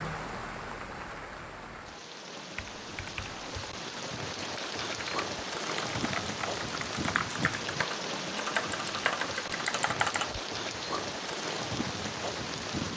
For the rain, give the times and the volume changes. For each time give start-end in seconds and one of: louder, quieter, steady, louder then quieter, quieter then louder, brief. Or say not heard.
0.0-12.9 louder.